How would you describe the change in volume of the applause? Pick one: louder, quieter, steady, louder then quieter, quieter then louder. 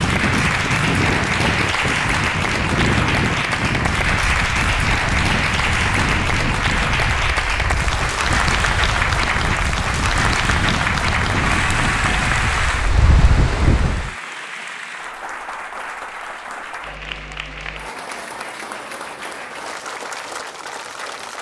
quieter.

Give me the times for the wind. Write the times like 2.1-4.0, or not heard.
0.0-14.1.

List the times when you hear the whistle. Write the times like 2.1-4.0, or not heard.
not heard.